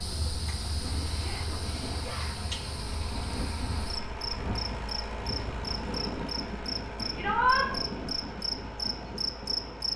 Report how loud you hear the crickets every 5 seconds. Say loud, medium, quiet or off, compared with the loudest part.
medium, loud.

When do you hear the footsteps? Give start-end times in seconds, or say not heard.
not heard.